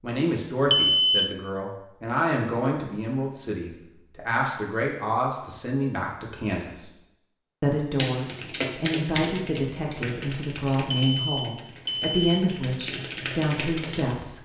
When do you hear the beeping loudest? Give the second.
1 s.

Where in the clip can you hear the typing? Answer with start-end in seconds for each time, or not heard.
8.0-14.2.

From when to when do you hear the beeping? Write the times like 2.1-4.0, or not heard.
0.7-1.4, 10.9-12.4.